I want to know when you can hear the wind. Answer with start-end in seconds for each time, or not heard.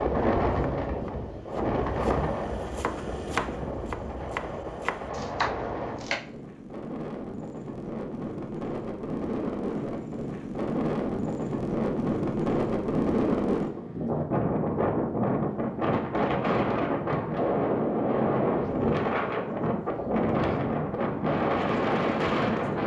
0.0-22.8.